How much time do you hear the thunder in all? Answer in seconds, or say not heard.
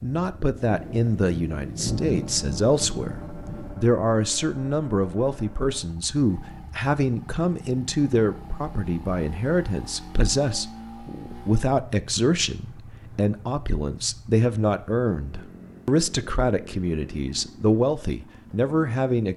3 s.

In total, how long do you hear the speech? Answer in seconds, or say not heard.
19 s.